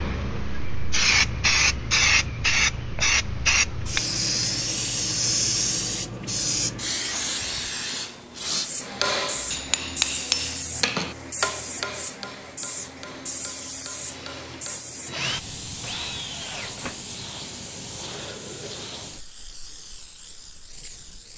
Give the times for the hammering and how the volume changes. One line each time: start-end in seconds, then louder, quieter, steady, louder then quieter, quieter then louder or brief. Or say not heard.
8.8-14.9 quieter.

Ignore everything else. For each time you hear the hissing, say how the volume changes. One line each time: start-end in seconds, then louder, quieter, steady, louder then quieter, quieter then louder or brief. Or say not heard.
0.0-21.3 quieter.